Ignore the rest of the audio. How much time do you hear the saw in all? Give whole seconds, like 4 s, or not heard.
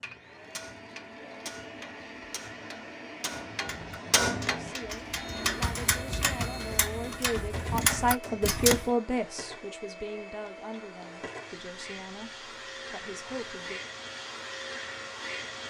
not heard.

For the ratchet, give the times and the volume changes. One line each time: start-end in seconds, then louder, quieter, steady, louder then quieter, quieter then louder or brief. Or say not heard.
3.6-8.9 louder.